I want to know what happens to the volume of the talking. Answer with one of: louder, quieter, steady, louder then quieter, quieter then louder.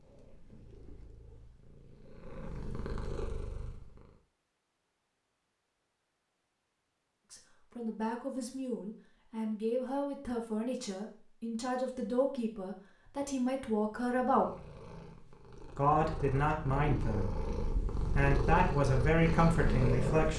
louder.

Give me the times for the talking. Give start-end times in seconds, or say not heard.
7.3-14.5, 15.8-20.3.